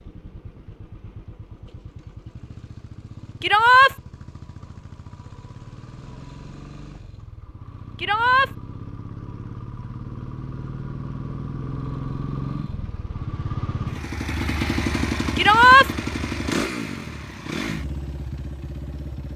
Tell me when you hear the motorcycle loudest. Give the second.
15 s.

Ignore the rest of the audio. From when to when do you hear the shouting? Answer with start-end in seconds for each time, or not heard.
3.4-4.0, 8.0-8.5, 15.3-15.9.